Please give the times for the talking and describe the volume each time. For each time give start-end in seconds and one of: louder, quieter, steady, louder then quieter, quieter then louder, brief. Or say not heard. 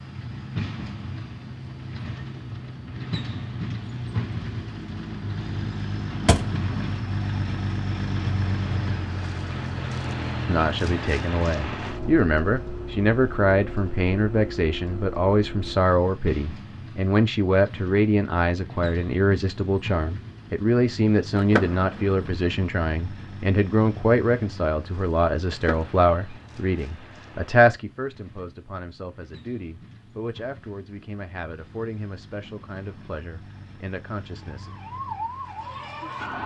10.4-34.7 quieter.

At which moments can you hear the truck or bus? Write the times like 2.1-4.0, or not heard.
0.0-36.4.